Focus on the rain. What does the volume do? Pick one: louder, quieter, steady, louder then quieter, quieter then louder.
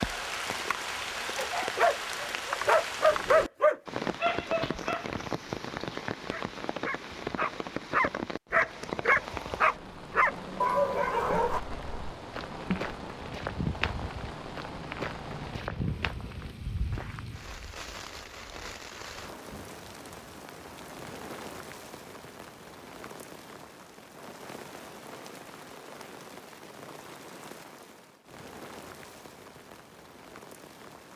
quieter.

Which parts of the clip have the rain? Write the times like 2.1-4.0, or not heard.
0.0-31.1.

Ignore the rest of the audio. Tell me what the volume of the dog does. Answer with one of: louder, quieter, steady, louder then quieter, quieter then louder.
quieter then louder.